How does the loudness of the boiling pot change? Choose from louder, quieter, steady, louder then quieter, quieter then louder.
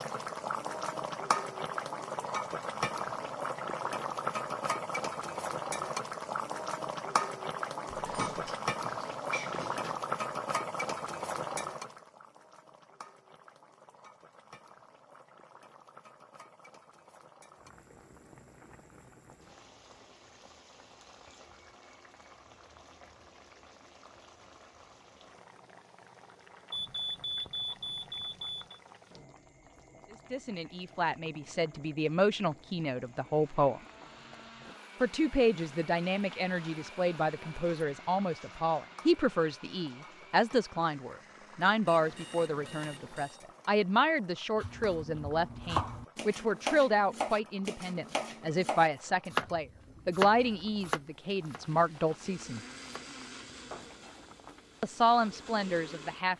quieter.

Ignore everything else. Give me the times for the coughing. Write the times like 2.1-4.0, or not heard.
not heard.